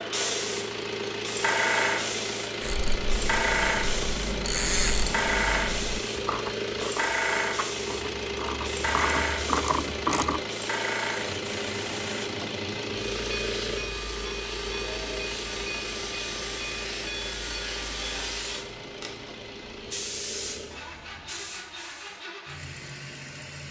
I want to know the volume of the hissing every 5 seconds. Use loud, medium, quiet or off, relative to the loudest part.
loud, loud, medium, medium, medium.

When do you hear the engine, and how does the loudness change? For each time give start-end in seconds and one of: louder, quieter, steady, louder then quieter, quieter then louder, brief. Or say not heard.
0.0-23.6 quieter.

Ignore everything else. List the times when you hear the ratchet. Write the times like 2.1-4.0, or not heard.
2.6-10.4.